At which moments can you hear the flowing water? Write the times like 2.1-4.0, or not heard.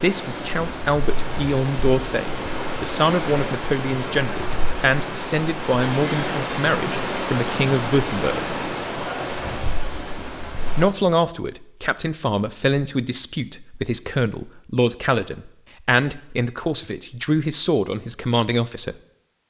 0.0-10.9.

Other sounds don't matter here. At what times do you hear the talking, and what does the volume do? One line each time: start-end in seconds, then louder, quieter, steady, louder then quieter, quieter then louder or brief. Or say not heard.
0.0-8.4 steady
10.8-18.9 steady.